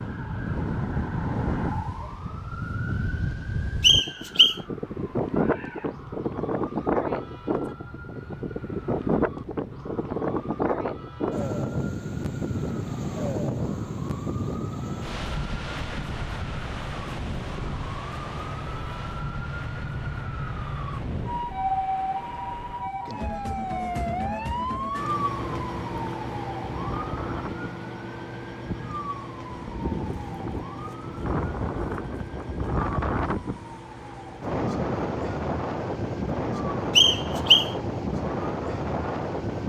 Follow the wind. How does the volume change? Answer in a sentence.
The volume of the wind goes down, then up.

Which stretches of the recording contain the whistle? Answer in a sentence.
The whistle can be heard from 3.8 to 4.5 s and from 37.0 to 37.7 s.